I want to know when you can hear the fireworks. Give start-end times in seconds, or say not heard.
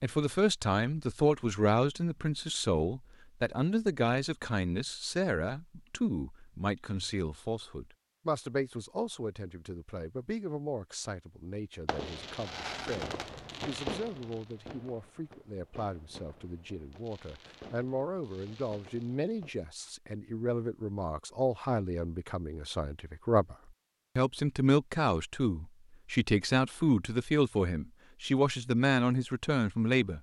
11.8-19.9.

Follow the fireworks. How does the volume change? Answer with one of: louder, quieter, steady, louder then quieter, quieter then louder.
quieter.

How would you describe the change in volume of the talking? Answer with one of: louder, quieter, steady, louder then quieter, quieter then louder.
quieter then louder.